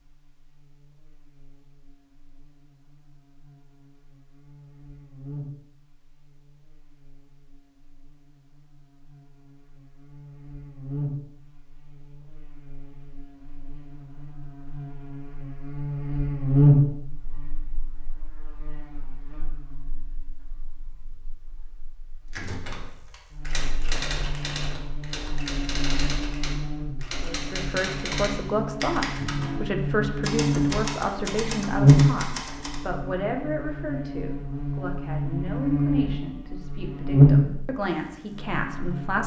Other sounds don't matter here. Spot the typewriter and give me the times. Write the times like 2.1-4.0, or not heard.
22.3-32.8.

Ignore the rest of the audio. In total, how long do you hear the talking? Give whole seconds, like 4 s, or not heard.
12 s.